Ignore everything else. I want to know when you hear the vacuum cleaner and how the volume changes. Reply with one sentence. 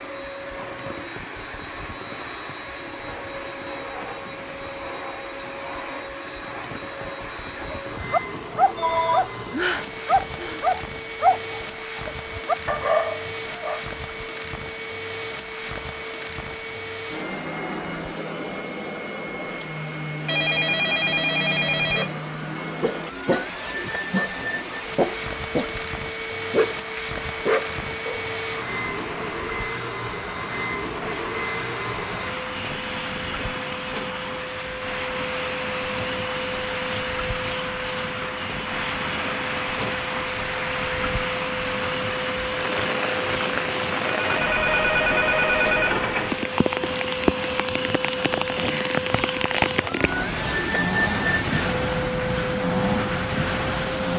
You can hear the vacuum cleaner from 0.0 to 54.1 s, getting louder.